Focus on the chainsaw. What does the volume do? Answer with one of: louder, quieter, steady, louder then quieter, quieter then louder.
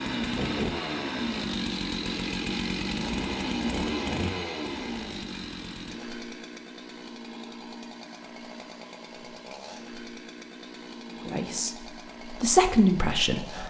quieter.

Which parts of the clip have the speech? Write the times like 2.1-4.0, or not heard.
11.1-13.6.